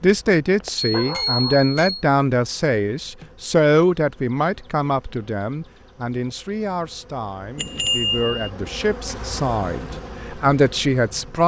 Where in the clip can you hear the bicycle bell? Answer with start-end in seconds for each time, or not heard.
0.9-2.0, 7.5-8.5.